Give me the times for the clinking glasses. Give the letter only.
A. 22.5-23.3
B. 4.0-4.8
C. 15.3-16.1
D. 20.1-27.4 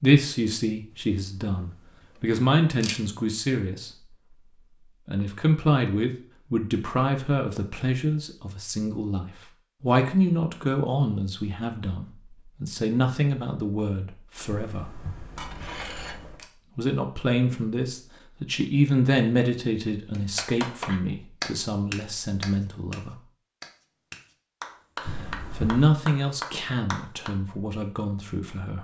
C.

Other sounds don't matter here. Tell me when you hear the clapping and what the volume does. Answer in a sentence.
You can hear the clapping from 20.1 to 27.4 s, getting quieter then louder.